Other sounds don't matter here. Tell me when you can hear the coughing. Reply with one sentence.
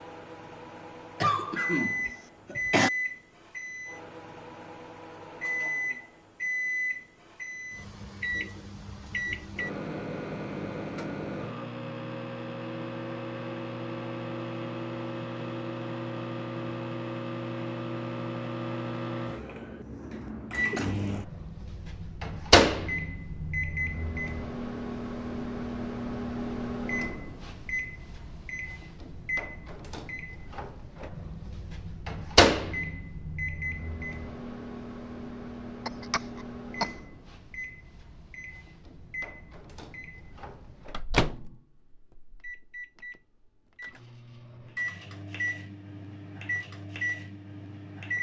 You can hear the coughing from 1.2 to 2.9 s, from 20.2 to 20.9 s and from 35.9 to 37.0 s.